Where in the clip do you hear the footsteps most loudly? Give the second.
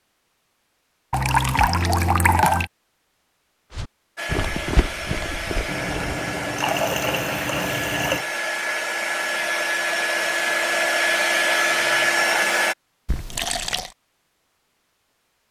5 s.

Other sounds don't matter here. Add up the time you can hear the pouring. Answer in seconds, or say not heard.
5 s.